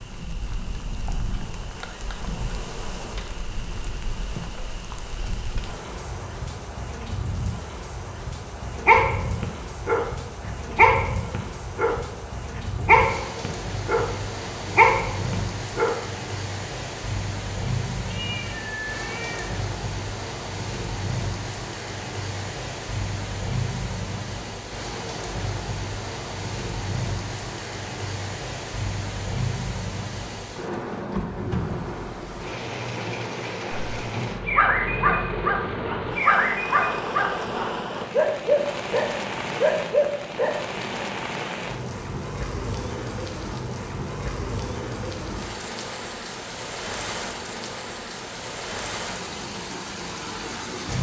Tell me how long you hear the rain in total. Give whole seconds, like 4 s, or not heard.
51 s.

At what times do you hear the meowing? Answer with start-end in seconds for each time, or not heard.
18.1-19.6.